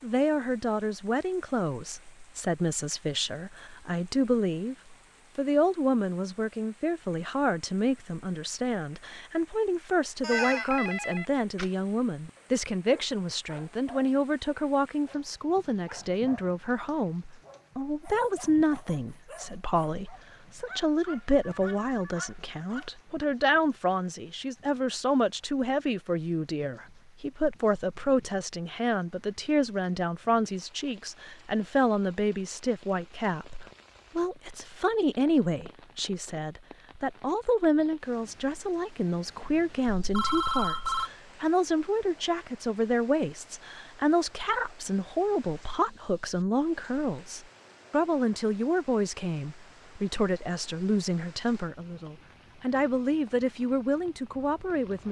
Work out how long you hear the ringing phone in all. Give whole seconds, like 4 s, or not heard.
4 s.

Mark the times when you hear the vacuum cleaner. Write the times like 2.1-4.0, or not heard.
not heard.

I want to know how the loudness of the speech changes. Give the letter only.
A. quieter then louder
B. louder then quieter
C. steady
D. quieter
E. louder
C.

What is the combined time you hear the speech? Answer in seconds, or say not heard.
55 s.